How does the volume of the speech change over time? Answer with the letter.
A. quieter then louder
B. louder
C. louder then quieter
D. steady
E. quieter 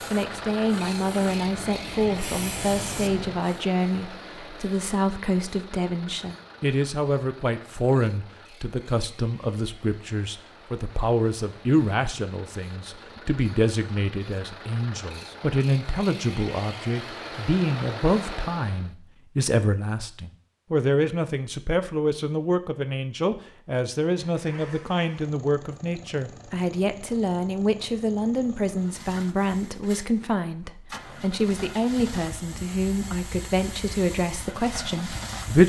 D.